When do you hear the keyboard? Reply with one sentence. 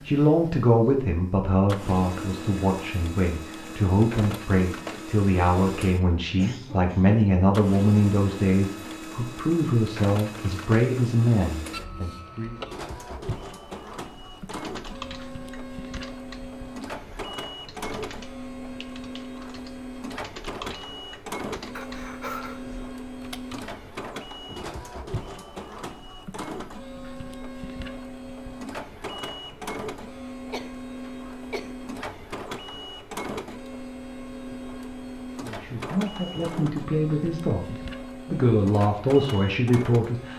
The keyboard can be heard from 14.3 to 23.8 s.